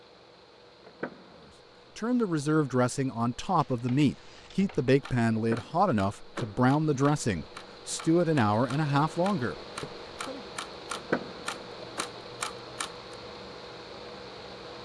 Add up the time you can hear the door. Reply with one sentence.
You can hear the door for 3 seconds altogether.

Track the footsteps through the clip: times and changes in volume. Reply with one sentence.
You can't hear the footsteps here.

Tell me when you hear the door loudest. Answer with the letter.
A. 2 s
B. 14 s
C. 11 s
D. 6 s
C.